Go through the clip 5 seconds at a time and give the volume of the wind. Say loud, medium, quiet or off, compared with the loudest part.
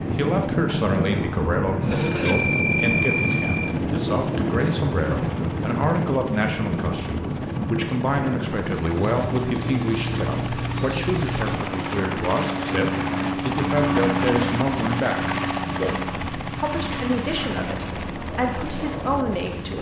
loud, loud, medium, medium.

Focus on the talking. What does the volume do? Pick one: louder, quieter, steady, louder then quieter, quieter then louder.
steady.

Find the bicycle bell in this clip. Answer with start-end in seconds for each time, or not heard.
1.9-3.8.